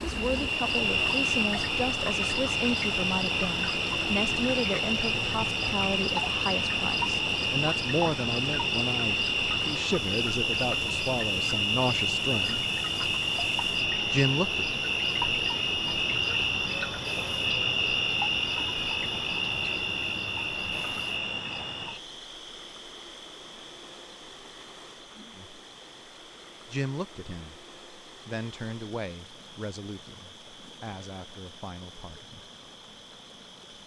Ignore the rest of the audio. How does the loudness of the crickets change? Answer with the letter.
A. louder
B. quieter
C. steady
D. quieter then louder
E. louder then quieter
B.